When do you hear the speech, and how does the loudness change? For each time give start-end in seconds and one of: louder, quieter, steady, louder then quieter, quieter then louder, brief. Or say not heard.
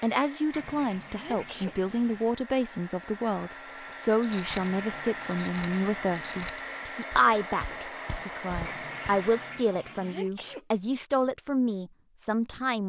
0.0-12.8 steady.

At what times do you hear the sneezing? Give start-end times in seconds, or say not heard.
1.1-1.8, 9.9-10.7.